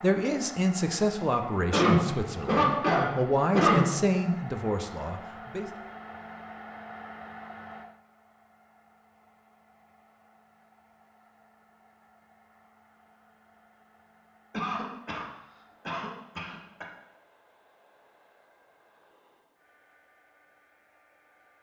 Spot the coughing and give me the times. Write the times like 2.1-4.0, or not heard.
1.7-3.9, 14.5-15.2, 15.8-16.9.